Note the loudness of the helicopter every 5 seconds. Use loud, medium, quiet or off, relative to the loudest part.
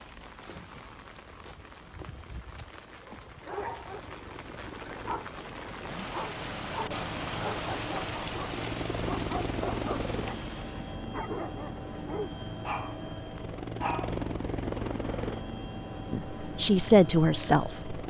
quiet, loud, loud, loud.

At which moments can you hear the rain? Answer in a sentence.
The rain can be heard from 0.0 to 11.1 s.